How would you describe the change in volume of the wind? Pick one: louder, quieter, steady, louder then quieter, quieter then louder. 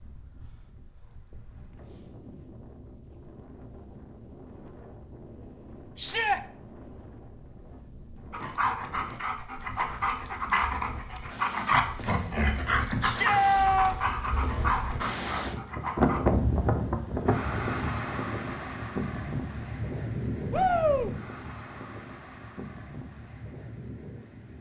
louder then quieter.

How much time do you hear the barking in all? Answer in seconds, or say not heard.
8 s.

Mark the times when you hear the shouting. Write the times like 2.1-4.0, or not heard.
6.0-6.4, 13.0-13.9, 20.5-21.1.